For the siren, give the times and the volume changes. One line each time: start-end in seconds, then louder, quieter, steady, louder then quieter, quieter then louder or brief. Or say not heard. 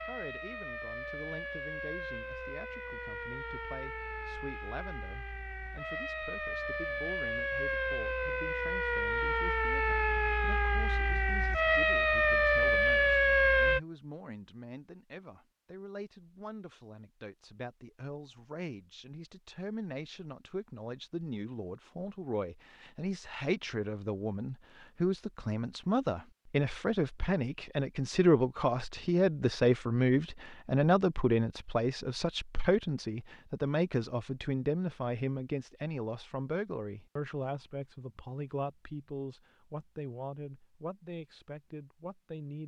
0.0-13.8 louder.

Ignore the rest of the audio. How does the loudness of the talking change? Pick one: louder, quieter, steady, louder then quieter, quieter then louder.
louder then quieter.